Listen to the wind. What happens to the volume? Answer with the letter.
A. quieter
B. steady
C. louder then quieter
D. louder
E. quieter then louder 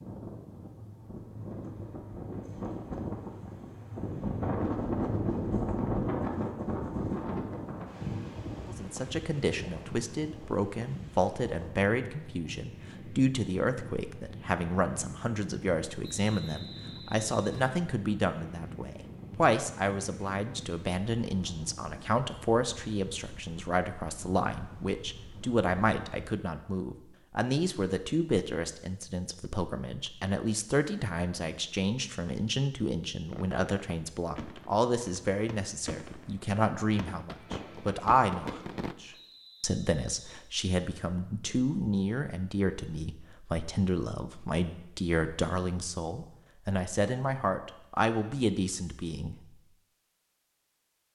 A.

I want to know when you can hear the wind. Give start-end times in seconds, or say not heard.
0.0-26.4.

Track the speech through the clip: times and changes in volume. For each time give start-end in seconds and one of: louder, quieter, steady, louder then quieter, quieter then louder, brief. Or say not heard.
8.7-49.4 steady.